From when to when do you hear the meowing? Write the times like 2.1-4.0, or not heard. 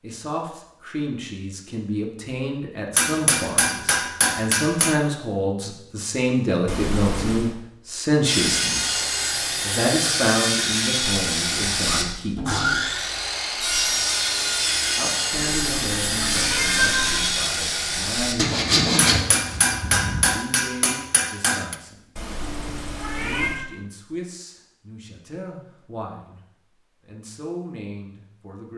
6.7-7.5, 15.3-17.3, 22.1-23.6.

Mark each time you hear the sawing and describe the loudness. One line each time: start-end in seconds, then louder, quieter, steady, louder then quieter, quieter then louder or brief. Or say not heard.
8.2-20.2 steady.